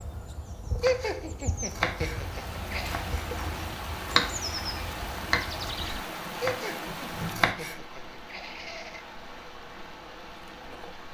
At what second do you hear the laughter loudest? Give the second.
1 s.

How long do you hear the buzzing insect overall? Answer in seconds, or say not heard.
11 s.